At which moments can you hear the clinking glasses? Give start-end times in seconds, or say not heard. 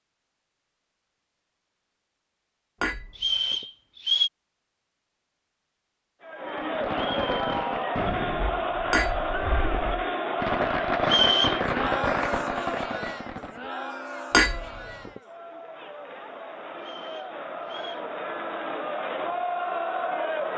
2.8-3.6, 8.9-10.1, 14.3-15.2.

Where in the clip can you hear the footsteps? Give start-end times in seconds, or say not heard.
not heard.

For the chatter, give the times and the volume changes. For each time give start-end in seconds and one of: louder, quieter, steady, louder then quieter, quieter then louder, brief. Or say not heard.
6.2-20.5 quieter then louder.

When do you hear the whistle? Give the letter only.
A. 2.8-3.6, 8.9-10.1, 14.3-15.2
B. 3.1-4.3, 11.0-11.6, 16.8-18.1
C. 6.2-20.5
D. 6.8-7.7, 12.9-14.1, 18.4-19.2
B.